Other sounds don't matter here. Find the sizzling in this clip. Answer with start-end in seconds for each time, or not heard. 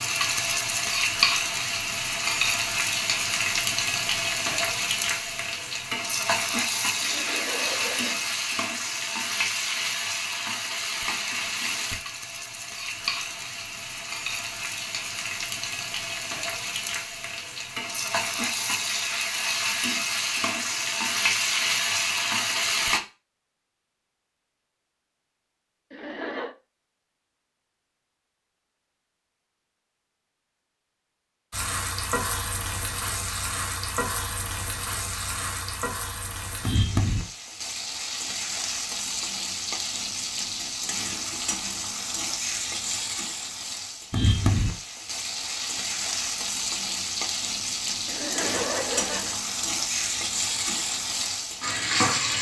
0.0-23.0, 31.5-52.3.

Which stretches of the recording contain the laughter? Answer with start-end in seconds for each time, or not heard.
7.0-8.3, 25.9-26.6, 48.0-49.4.